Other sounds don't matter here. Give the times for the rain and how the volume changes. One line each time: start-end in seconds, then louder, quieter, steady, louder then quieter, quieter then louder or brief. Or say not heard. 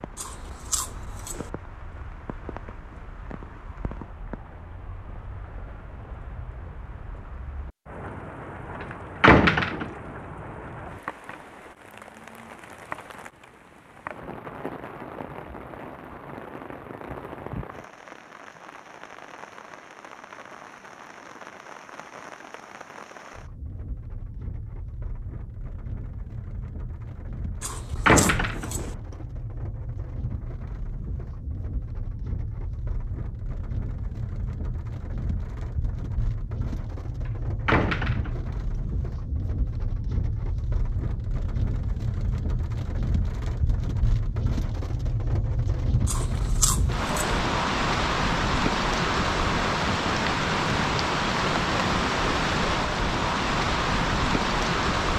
0.0-55.1 louder.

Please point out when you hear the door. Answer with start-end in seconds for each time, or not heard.
9.2-9.9, 28.1-28.8, 37.6-38.5.